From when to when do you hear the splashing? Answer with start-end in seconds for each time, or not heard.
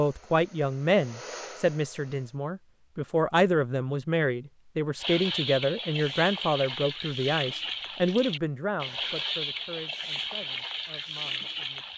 5.0-11.9.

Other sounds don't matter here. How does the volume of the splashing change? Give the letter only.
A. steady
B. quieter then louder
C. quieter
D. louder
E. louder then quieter
A.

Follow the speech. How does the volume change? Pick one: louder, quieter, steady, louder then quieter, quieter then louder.
quieter.